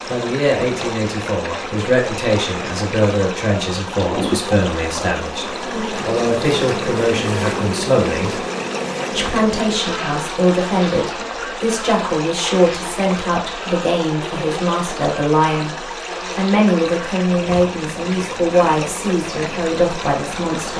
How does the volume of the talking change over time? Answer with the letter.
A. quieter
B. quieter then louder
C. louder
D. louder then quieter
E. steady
E.